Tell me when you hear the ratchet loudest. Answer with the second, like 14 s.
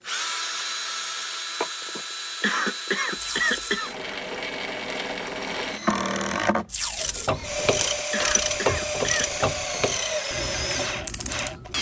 9 s.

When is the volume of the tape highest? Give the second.
7 s.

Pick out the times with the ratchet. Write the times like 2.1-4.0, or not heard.
7.0-11.7.